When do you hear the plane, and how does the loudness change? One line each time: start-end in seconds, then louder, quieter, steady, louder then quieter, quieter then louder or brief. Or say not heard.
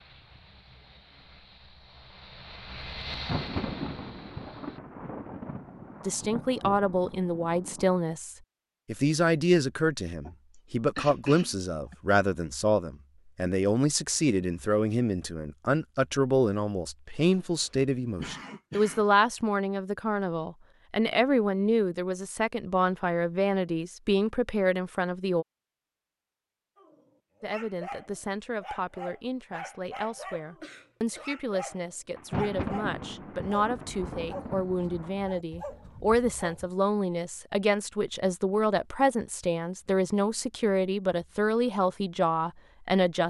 0.0-4.8 louder then quieter.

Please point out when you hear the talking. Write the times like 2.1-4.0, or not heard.
6.0-25.4, 27.4-43.2.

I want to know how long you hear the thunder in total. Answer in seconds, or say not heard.
8 s.